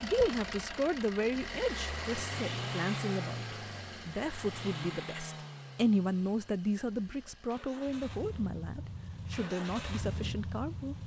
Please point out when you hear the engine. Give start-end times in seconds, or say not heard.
0.0-11.0.